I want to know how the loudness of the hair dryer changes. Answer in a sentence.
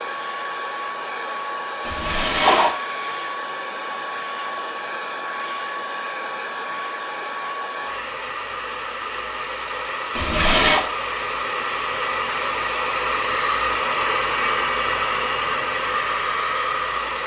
The volume of the hair dryer goes up.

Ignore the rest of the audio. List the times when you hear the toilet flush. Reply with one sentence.
The toilet flush can be heard from 1.9 to 2.8 s and from 10.2 to 10.8 s.